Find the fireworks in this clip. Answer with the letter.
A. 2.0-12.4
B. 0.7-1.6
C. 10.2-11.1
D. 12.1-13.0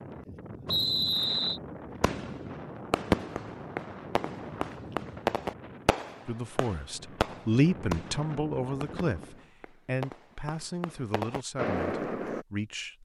A.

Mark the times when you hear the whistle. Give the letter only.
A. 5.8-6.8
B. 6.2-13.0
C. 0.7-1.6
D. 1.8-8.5
C.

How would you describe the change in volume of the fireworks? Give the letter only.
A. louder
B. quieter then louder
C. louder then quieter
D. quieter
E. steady
B.